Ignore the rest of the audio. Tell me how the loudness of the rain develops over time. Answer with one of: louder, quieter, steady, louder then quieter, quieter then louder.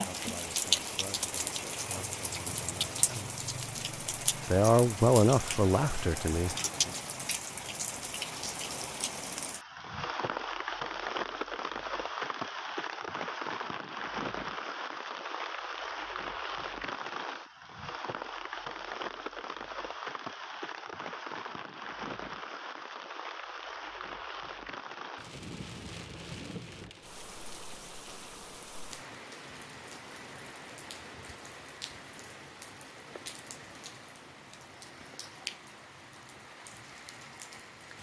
quieter.